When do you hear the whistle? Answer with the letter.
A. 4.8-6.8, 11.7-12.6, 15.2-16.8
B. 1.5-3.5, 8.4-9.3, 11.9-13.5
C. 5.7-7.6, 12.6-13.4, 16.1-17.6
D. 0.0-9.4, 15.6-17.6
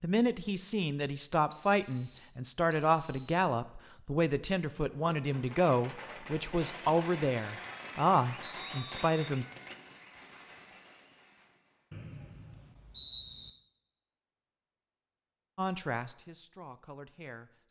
B.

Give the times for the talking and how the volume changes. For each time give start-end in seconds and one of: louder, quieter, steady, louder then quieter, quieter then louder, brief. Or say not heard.
0.0-9.4 steady
15.6-17.6 brief.